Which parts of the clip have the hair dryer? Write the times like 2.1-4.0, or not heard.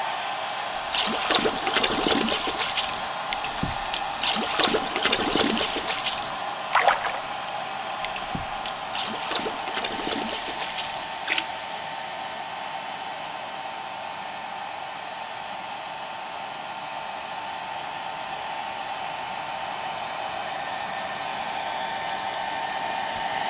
0.0-23.4.